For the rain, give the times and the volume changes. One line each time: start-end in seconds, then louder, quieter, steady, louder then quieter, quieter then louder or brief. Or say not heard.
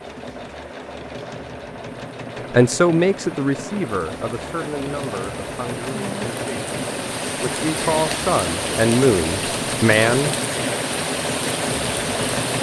0.0-12.5 louder.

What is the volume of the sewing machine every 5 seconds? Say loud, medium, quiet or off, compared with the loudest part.
medium, loud, loud.